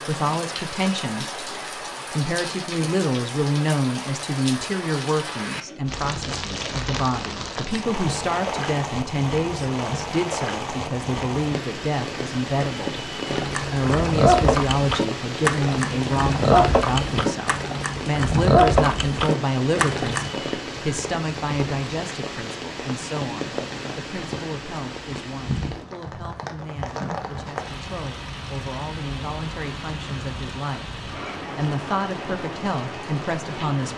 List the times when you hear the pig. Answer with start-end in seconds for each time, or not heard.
13.2-20.3.